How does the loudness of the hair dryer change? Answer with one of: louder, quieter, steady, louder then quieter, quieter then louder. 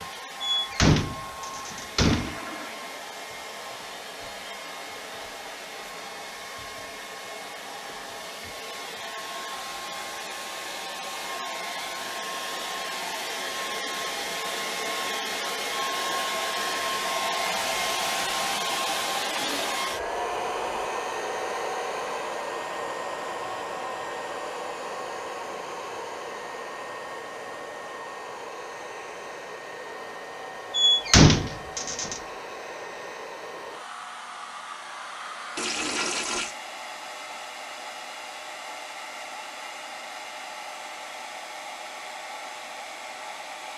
louder then quieter.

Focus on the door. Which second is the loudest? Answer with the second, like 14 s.
31 s.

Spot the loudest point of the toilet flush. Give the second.
36 s.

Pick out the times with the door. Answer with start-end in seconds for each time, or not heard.
0.4-2.4, 30.7-32.2.